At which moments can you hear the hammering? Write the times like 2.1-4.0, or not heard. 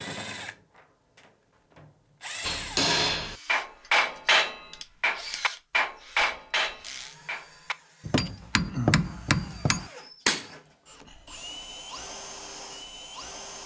2.4-10.4.